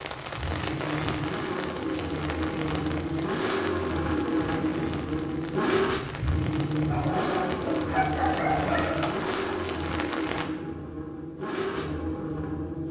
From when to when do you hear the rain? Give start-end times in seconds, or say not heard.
0.0-10.5.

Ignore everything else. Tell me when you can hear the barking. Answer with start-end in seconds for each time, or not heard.
6.9-9.3.